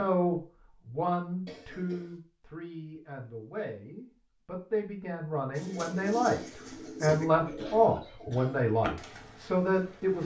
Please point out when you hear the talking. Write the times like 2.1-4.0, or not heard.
0.0-10.2.